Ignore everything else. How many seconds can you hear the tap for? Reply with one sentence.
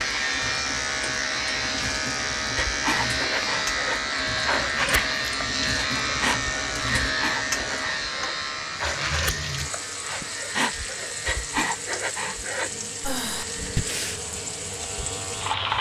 You can hear the tap for 16 seconds altogether.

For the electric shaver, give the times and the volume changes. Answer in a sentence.
You can hear the electric shaver from 0.0 to 15.7 s, getting quieter.